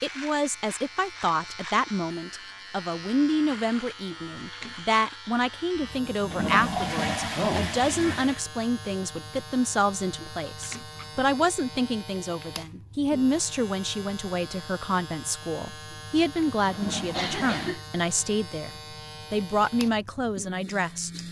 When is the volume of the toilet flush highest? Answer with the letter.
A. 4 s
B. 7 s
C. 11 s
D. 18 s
B.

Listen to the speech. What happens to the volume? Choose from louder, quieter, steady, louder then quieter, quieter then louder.
steady.